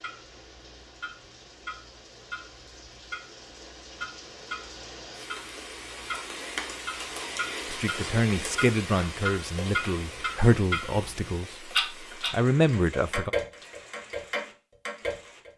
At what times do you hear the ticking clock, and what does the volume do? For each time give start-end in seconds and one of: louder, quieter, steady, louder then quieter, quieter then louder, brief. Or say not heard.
0.0-15.5 louder.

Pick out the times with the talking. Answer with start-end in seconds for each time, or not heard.
7.7-13.3.